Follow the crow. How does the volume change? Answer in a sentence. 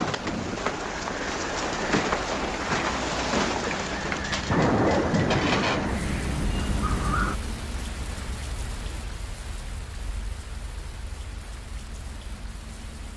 The loudness of the crow goes up.